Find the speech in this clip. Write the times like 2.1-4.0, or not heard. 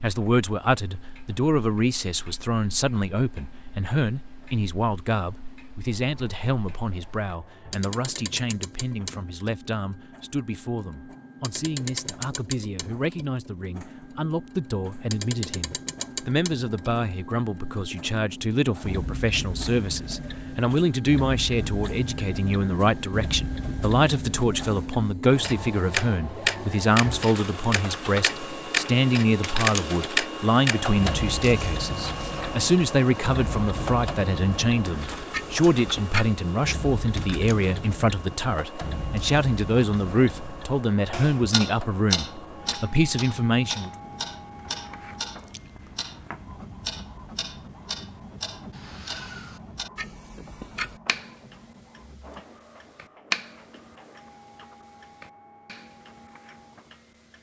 0.0-43.9.